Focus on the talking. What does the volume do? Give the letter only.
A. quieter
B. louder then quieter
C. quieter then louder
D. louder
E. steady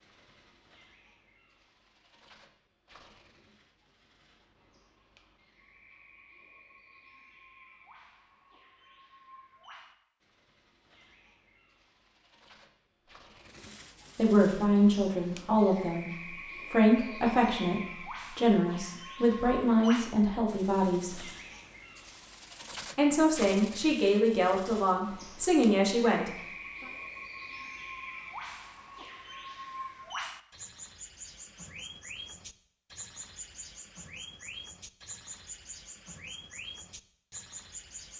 E.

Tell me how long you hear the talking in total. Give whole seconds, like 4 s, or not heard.
11 s.